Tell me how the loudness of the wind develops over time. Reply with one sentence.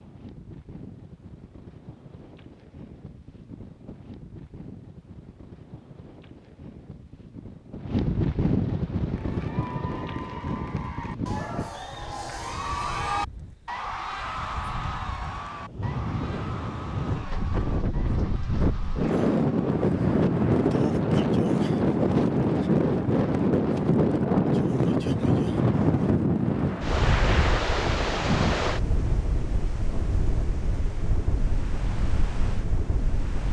The volume of the wind goes up, then down.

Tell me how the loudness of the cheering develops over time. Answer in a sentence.
The volume of the cheering goes up, then down.